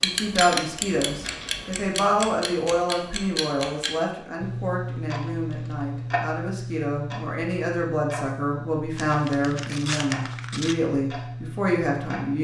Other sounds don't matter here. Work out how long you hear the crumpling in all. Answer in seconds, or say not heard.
3 s.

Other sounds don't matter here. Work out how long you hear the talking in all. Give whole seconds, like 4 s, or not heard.
12 s.